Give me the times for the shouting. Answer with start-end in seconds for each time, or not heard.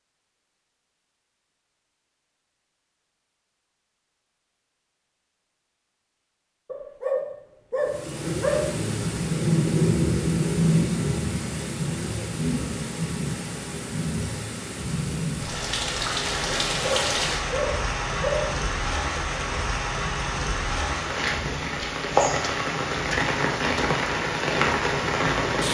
not heard.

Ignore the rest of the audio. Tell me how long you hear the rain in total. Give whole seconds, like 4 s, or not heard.
18 s.